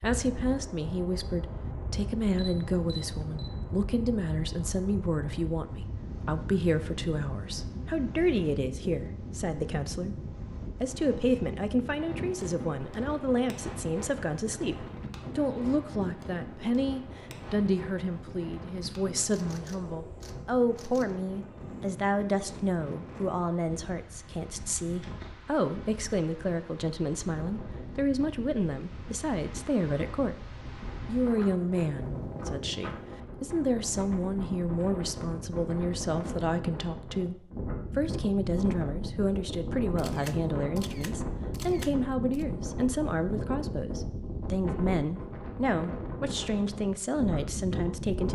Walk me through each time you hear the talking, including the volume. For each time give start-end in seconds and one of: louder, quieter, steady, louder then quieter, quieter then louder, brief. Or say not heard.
0.0-48.3 steady.